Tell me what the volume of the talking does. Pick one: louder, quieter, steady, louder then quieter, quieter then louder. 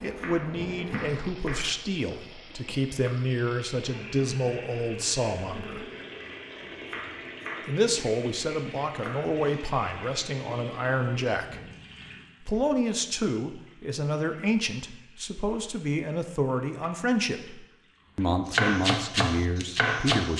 steady.